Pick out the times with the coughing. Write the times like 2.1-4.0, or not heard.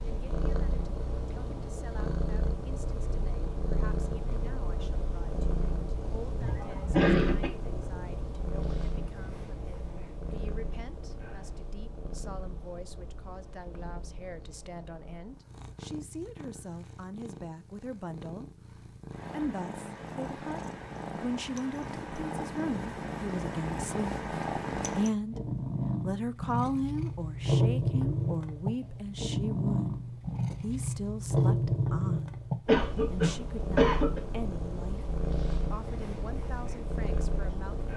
6.4-7.5, 32.6-34.2.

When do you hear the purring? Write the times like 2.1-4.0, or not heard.
0.0-37.9.